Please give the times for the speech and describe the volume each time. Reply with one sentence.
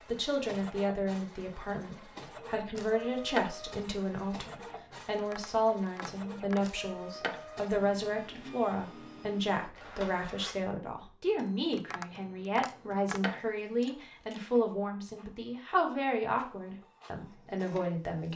You can hear the speech from 0.1 to 18.3 s, at a steady volume.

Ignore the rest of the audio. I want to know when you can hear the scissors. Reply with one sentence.
You can hear the scissors from 2.8 to 3.5 s, from 6.6 to 7.5 s and from 12.6 to 14.4 s.